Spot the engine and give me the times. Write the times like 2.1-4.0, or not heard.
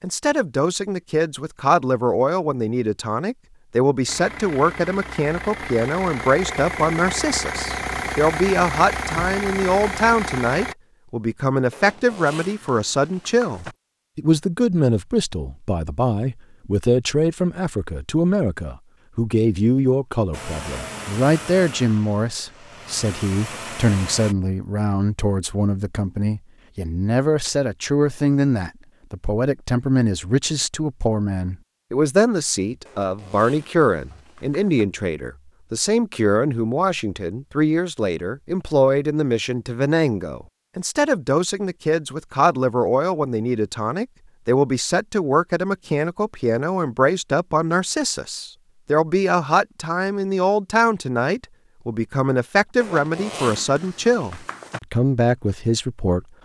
4.0-10.8, 20.3-24.4.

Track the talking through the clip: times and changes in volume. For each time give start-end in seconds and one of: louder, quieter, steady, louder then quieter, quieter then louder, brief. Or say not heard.
0.0-56.2 steady.